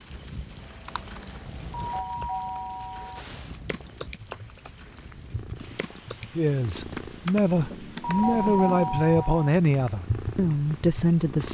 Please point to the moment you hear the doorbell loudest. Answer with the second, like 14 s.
9 s.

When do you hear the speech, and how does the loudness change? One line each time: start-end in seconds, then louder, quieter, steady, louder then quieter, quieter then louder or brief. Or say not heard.
6.3-11.4 steady.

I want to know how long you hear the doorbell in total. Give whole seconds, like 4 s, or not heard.
3 s.